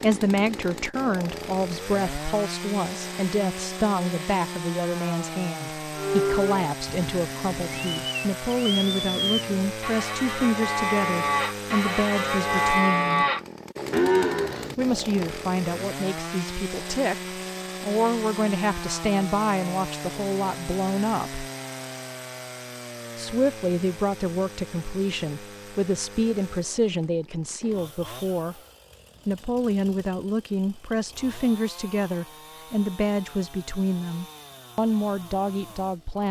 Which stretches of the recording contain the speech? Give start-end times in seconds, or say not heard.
0.0-13.2, 14.8-21.4, 23.1-28.6, 29.2-36.2.